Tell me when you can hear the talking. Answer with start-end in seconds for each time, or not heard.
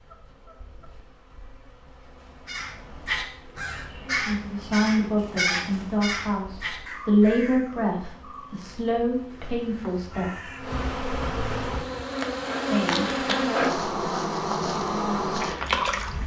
4.0-10.4, 12.7-13.8.